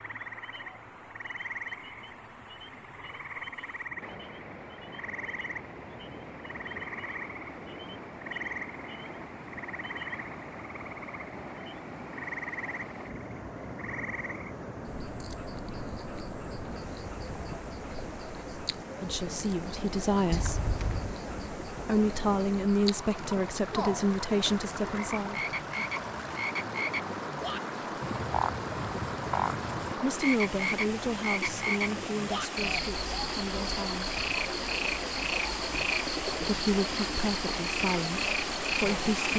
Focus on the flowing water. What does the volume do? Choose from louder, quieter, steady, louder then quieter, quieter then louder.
louder.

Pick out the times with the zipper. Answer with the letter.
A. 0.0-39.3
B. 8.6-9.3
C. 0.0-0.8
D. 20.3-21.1
D.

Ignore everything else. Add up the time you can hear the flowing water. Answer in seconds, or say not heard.
39 s.